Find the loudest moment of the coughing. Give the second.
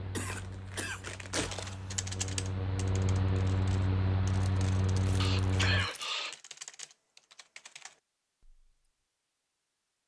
6 s.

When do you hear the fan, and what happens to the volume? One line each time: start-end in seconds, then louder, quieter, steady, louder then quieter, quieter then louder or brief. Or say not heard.
0.0-5.9 louder.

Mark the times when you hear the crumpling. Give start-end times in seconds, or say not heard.
0.2-1.6, 5.0-6.2.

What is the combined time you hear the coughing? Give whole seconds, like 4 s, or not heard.
3 s.